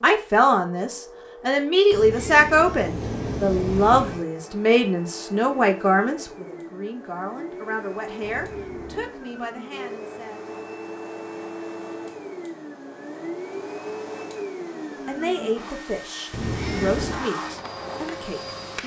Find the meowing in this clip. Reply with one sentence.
You can hear the meowing from 1.9 to 4.2 s, from 8.2 to 9.2 s and from 16.3 to 17.3 s.